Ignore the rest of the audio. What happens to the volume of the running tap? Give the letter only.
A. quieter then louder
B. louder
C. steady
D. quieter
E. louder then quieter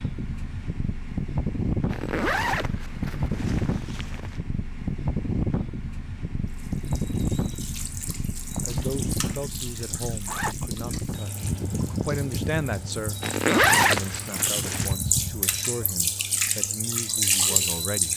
B.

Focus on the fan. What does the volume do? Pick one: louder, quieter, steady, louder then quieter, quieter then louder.
quieter.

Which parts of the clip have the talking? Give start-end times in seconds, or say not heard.
8.6-18.1.